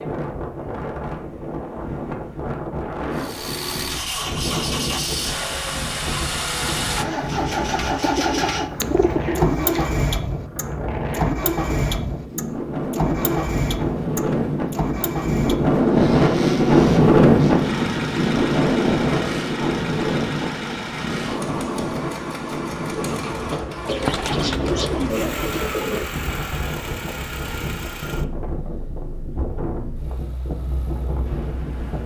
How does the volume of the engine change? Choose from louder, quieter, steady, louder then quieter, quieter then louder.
quieter.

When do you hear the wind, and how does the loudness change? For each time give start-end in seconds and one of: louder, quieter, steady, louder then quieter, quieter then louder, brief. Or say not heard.
0.0-32.0 louder then quieter.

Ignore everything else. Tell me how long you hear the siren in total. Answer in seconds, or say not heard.
not heard.